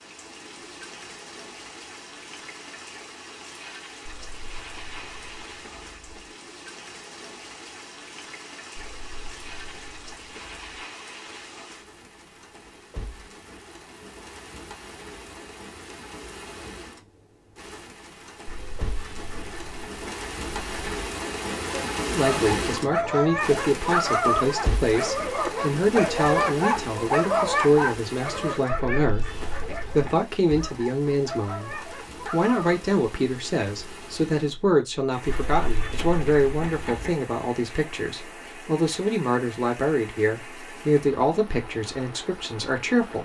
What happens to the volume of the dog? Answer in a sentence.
The volume of the dog goes down.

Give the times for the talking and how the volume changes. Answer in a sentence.
You can hear the talking from 22.1 to 43.2 s, at a steady volume.